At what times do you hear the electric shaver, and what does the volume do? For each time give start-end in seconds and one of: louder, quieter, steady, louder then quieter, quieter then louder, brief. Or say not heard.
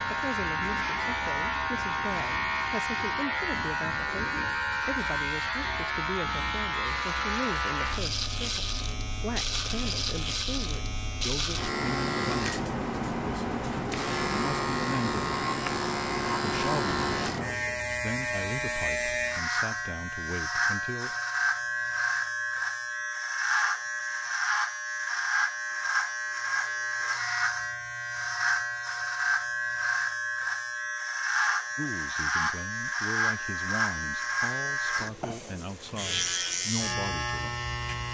0.0-38.0 steady.